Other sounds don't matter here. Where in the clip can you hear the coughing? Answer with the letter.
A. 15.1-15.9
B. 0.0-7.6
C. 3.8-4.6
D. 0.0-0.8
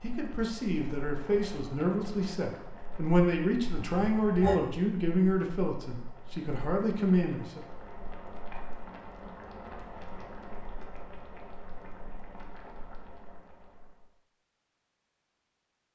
C.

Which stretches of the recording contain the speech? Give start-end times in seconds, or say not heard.
0.0-7.6.